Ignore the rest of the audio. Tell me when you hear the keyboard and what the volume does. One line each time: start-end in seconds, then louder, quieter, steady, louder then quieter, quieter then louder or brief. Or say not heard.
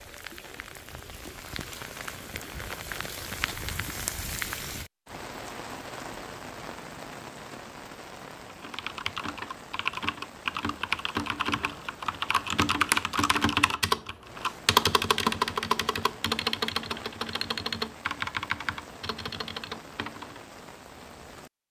8.5-20.4 louder then quieter.